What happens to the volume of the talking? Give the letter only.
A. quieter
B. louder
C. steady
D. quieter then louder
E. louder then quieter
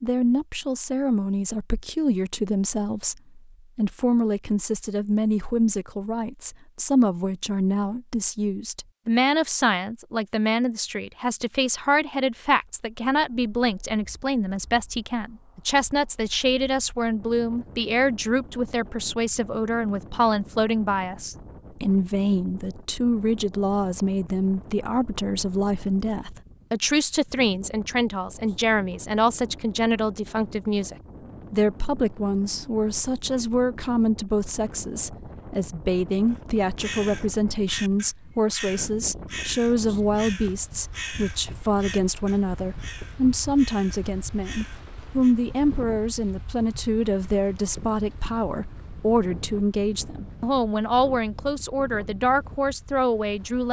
C.